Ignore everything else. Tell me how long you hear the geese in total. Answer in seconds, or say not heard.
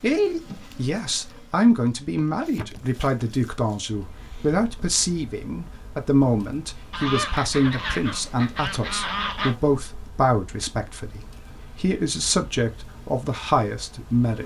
3 s.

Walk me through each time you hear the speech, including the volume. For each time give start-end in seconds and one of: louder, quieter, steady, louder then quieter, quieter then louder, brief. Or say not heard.
0.0-14.4 steady.